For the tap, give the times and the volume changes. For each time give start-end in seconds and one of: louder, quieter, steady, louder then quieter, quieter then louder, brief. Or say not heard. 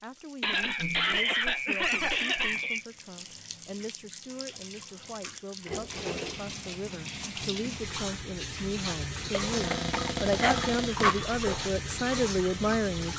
0.0-13.1 louder.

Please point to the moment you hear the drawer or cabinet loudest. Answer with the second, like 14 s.
10 s.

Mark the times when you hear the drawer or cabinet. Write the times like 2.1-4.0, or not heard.
1.8-2.2, 5.7-6.5, 9.5-11.2.